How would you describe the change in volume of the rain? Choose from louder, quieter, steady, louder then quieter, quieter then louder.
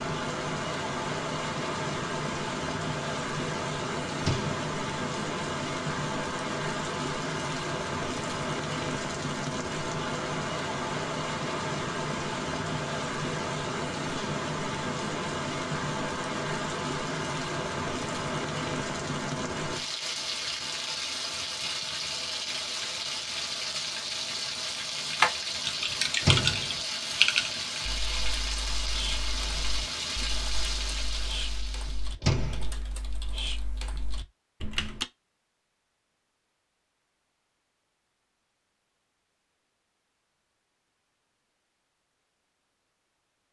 steady.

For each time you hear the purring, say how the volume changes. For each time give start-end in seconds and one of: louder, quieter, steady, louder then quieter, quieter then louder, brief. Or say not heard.
not heard.